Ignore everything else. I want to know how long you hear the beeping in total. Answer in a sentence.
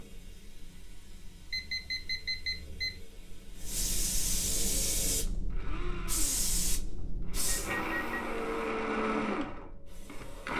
You can hear the beeping for 2 seconds altogether.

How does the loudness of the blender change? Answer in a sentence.
The volume of the blender goes down, then up.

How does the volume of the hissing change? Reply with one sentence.
The loudness of the hissing goes up, then down.